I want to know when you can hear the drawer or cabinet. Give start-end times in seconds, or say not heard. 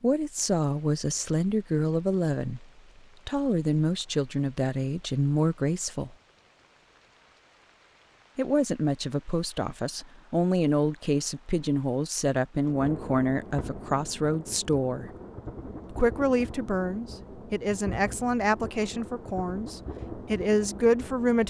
not heard.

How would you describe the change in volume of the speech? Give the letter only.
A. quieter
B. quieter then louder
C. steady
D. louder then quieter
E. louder
C.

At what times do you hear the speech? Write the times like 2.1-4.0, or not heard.
0.0-6.2, 8.3-15.1, 15.9-21.4.